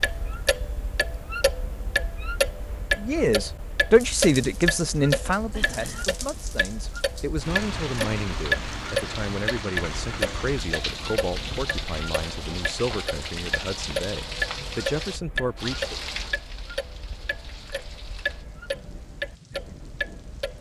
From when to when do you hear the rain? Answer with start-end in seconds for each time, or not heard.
3.9-20.5.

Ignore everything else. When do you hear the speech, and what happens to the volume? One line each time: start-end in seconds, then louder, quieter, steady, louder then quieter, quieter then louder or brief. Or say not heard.
3.0-16.0 quieter.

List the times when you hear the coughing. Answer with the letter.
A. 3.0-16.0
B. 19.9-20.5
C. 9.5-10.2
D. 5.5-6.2
D.